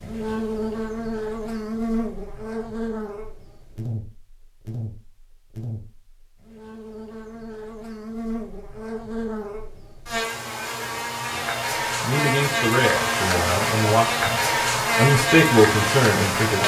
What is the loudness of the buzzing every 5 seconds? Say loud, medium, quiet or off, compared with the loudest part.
medium, quiet, loud, loud.